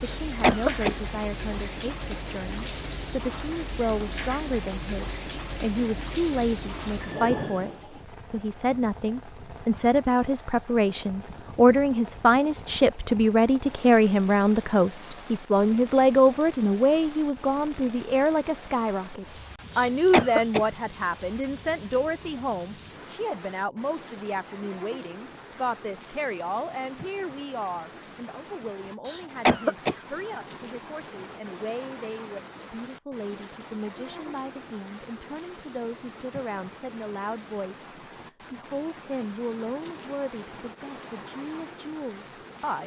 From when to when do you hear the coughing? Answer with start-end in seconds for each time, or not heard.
0.1-0.9, 19.8-20.6, 29.1-29.9.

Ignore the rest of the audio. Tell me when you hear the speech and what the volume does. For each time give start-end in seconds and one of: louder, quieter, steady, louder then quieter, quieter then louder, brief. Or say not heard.
0.0-42.8 louder then quieter.